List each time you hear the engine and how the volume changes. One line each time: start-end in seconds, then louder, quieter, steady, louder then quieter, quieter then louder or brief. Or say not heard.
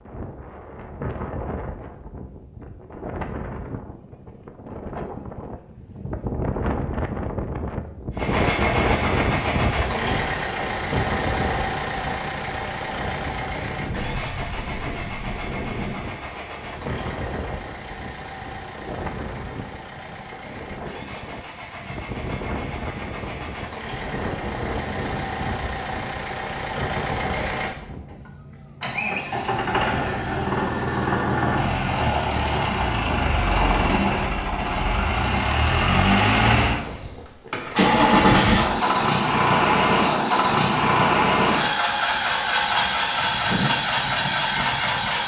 8.2-45.2 quieter then louder.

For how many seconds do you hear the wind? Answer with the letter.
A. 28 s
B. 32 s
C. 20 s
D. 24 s
A.